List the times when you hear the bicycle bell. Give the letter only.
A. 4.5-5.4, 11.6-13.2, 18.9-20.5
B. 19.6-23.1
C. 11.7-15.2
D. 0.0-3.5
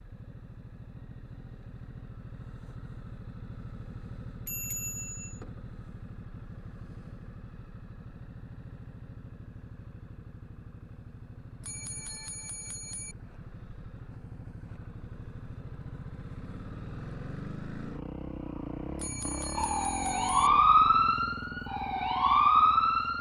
A.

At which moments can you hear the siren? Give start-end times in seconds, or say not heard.
19.6-23.1.